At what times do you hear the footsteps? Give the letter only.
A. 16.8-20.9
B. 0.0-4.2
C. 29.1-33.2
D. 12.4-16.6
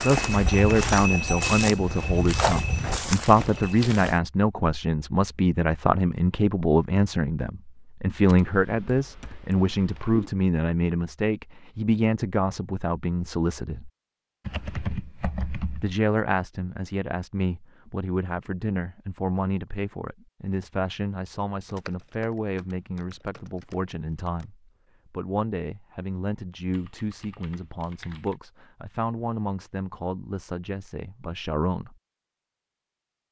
B.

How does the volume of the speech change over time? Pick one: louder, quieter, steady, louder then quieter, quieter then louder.
quieter.